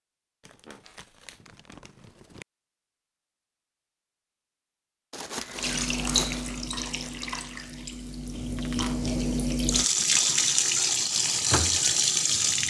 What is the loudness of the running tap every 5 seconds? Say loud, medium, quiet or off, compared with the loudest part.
off, medium, loud.